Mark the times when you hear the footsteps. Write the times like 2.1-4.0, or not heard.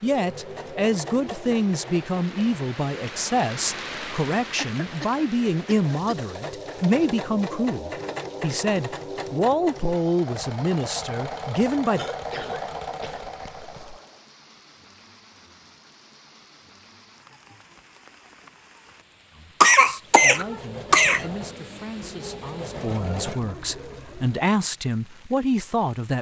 not heard.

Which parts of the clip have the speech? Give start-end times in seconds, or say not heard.
0.0-12.1, 19.3-26.1.